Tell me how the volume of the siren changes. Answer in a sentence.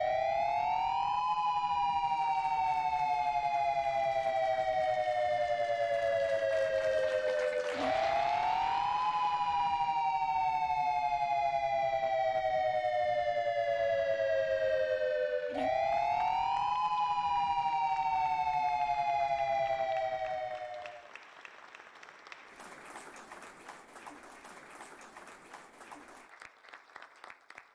The volume of the siren stays about the same.